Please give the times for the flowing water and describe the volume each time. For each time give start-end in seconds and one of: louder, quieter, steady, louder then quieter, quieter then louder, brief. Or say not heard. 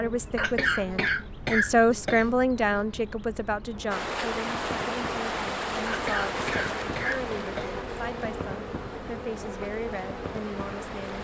3.9-11.1 quieter.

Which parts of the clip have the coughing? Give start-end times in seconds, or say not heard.
0.3-2.2, 5.8-7.8.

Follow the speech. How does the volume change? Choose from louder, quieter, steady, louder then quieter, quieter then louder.
quieter.